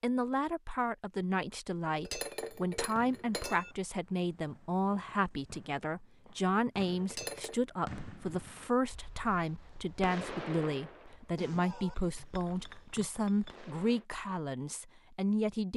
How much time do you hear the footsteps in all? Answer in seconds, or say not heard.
not heard.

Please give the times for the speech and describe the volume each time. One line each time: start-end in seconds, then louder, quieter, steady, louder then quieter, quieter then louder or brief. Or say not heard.
0.0-15.7 steady.